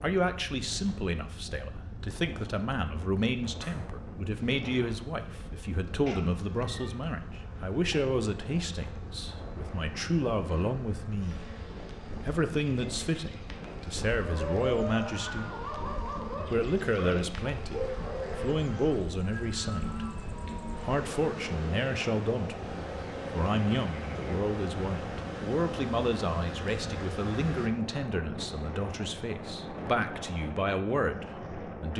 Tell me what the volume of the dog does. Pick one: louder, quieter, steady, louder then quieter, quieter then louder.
steady.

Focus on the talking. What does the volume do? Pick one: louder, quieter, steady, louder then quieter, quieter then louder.
steady.